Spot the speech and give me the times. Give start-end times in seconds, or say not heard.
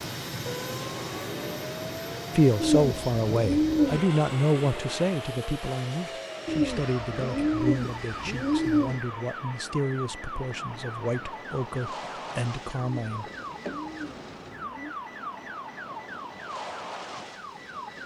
2.4-13.3.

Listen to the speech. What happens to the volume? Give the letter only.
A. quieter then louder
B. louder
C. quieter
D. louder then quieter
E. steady
C.